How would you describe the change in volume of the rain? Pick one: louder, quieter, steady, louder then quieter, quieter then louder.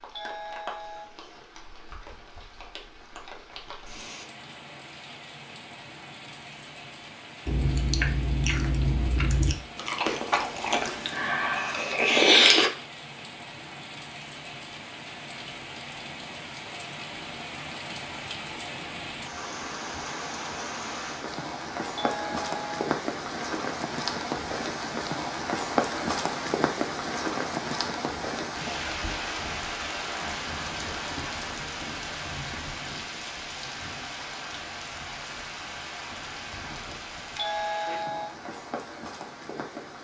louder then quieter.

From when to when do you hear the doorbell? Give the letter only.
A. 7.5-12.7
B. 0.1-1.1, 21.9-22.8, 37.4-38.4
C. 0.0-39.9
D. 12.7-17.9
B.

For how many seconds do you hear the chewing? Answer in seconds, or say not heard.
5 s.